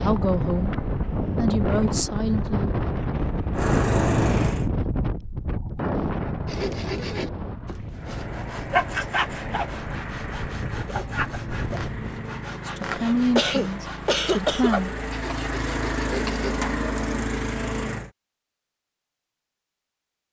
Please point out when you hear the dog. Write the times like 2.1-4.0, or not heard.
not heard.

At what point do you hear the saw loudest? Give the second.
9 s.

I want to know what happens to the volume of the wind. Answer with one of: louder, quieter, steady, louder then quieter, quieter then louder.
quieter.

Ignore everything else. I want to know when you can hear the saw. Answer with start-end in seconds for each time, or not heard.
6.5-16.6.